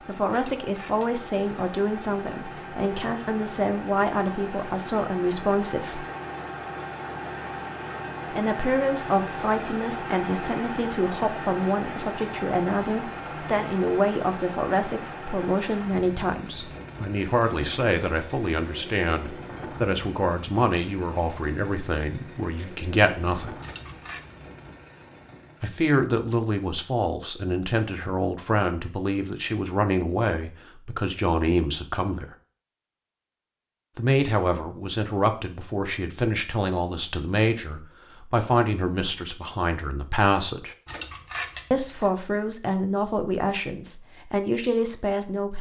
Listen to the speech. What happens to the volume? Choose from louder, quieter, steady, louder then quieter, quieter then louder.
steady.